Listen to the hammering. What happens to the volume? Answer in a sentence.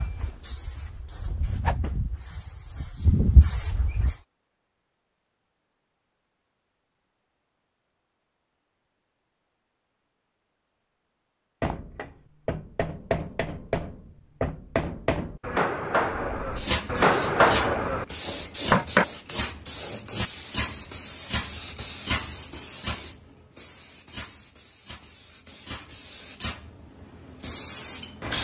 The loudness of the hammering goes up.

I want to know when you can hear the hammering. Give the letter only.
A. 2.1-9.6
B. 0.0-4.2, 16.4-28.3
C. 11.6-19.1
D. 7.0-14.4
C.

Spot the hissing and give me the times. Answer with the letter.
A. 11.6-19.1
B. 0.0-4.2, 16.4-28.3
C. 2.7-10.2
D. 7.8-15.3
B.